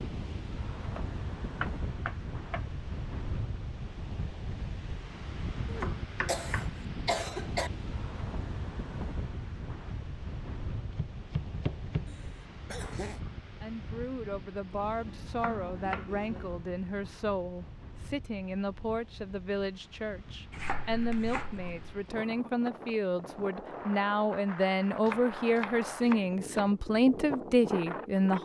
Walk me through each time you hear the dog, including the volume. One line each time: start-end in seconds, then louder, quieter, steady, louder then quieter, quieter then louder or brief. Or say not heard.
not heard.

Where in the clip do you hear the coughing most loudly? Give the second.
7 s.